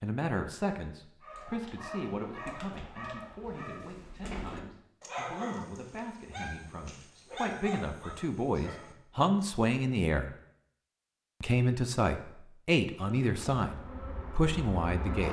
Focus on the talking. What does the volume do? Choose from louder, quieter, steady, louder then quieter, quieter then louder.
quieter then louder.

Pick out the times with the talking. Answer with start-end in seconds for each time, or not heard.
0.0-10.3, 11.4-15.2.